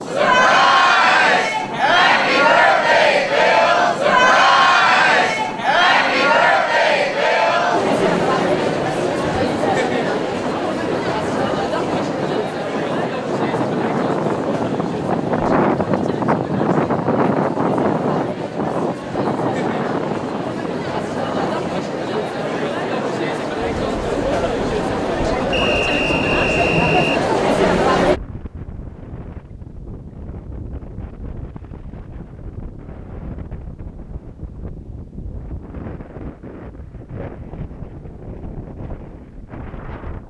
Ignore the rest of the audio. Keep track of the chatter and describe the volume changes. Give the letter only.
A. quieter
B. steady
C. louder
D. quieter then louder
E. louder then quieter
D.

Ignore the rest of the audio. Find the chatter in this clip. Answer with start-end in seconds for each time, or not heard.
0.0-28.2.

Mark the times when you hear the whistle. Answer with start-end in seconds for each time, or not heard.
25.5-27.2.